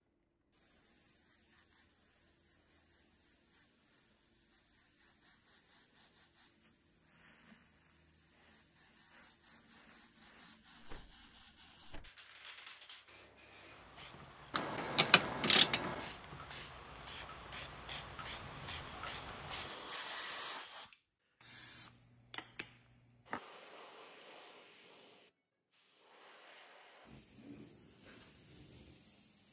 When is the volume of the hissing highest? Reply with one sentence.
The loudest moment of the hissing is at 20 seconds.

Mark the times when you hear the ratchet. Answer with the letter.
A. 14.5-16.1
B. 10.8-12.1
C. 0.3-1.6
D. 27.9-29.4
A.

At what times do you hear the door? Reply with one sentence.
The door can be heard from 10.8 to 12.1 s.